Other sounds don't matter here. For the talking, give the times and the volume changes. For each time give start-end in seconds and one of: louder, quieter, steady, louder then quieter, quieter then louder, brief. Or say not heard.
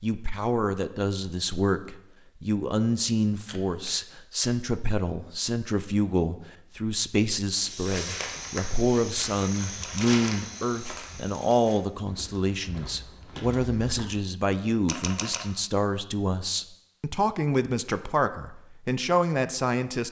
0.0-20.0 steady.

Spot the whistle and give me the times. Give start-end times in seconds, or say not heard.
not heard.